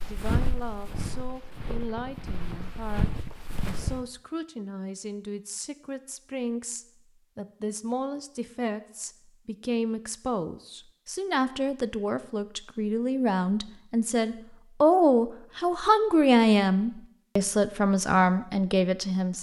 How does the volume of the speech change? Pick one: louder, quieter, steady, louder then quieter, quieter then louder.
louder.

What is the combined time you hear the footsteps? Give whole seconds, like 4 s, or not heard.
4 s.